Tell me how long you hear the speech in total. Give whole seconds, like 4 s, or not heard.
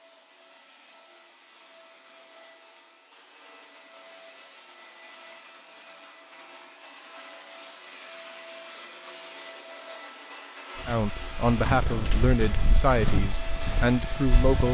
4 s.